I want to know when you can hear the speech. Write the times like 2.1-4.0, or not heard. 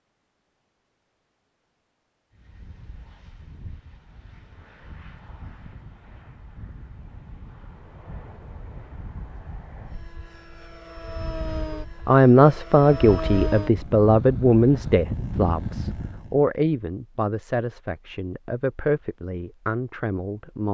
12.1-20.6.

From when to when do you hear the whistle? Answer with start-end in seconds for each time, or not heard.
not heard.